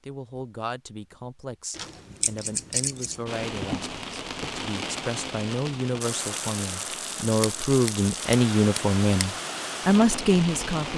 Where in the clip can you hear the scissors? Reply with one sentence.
The scissors can be heard from 1.7 to 3.2 s and from 7.4 to 9.2 s.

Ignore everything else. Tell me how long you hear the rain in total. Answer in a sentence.
The rain can be heard for 8 seconds in total.